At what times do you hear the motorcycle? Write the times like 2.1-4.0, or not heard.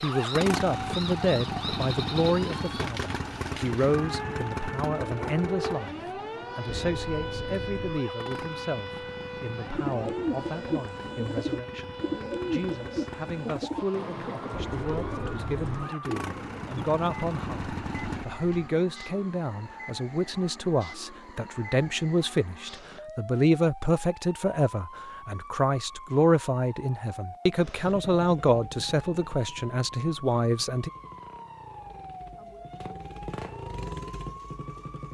0.0-18.2, 27.9-35.0.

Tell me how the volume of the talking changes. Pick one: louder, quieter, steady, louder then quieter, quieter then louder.
quieter then louder.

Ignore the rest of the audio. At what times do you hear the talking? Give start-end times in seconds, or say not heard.
0.0-6.0, 6.5-30.9.